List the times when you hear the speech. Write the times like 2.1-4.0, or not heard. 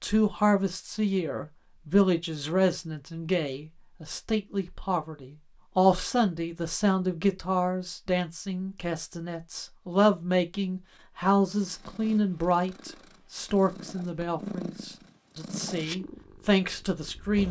0.0-17.4.